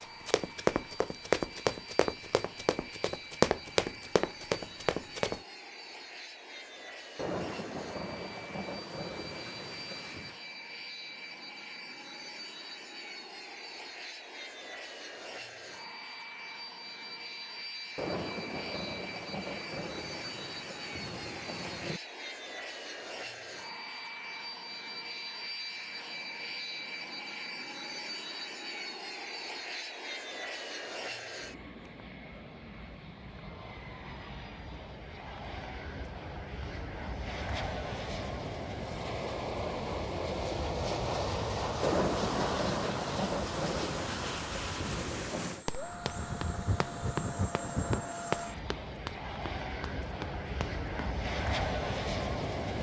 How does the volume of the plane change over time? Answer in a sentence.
The loudness of the plane goes up.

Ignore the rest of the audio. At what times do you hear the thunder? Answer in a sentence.
You can hear the thunder from 7.2 to 10.4 s, from 17.9 to 22.0 s and from 41.8 to 45.6 s.